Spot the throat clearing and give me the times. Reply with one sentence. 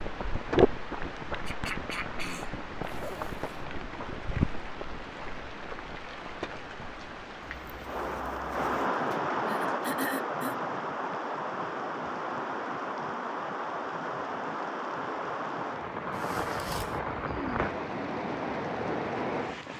The throat clearing can be heard from 1.4 to 2.5 s, from 9.1 to 10.6 s and from 17.2 to 17.7 s.